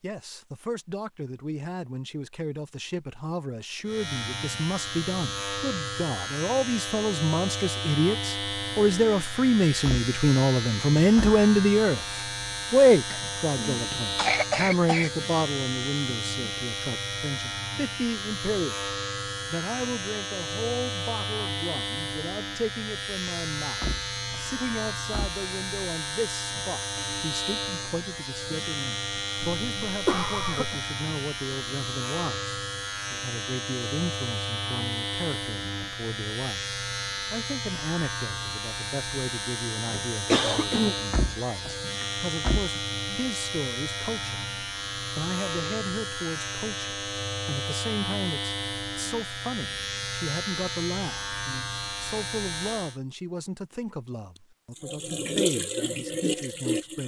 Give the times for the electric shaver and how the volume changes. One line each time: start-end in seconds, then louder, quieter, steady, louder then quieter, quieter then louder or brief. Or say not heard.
3.9-53.0 steady.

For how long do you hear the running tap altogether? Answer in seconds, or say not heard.
2 s.